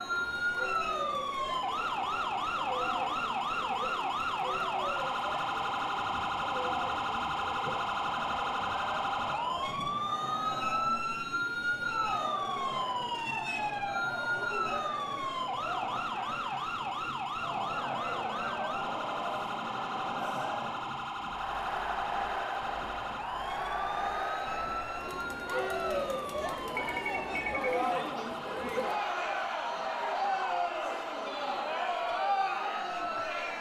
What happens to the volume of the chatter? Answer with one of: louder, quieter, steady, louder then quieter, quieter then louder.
louder.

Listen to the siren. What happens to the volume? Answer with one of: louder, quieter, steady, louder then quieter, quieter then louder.
quieter.